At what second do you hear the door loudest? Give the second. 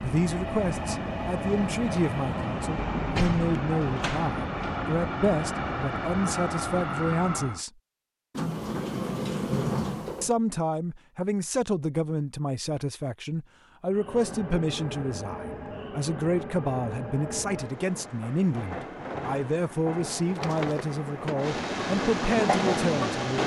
10 s.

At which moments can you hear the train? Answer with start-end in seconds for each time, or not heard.
0.0-7.7, 13.8-23.4.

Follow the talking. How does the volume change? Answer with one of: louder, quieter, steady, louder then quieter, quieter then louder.
steady.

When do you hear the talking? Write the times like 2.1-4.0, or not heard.
0.0-7.7, 10.2-23.4.